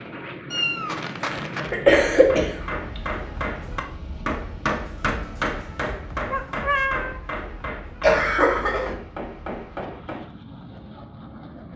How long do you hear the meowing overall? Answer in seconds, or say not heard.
2 s.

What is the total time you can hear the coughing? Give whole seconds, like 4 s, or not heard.
2 s.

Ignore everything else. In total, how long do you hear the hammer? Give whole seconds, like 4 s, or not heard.
9 s.